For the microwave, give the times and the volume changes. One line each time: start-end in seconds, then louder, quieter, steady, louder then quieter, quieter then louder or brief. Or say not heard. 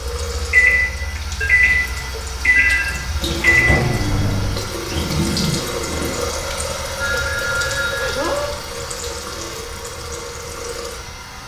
0.2-4.7 steady.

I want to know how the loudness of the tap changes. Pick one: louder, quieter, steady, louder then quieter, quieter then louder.
louder then quieter.